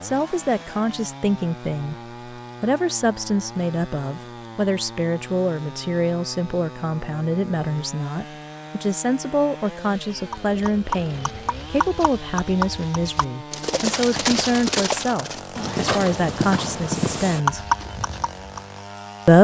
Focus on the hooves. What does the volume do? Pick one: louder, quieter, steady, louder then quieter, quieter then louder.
louder.